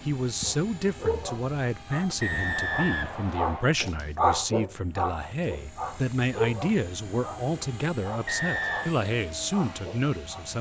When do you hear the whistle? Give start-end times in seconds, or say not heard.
2.2-3.8, 8.2-8.9.